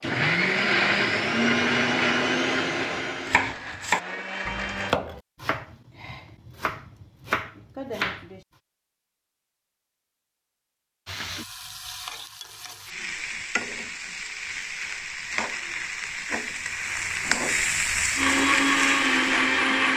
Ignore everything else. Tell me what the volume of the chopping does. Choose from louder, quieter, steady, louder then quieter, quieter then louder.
quieter then louder.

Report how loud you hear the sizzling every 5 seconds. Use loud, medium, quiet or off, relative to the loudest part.
off, off, medium, loud.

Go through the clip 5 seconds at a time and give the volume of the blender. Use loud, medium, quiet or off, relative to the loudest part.
loud, off, off, loud.